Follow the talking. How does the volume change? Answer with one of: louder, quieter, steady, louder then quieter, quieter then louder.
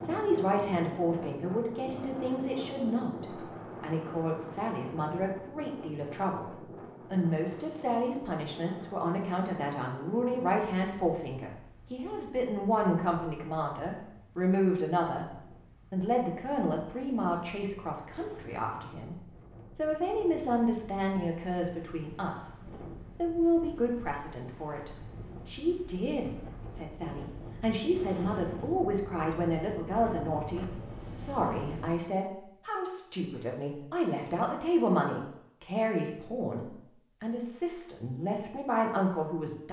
steady.